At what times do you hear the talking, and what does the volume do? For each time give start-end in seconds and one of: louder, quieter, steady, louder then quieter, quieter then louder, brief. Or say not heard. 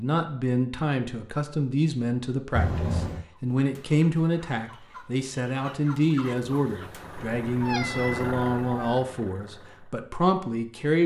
0.0-11.0 steady.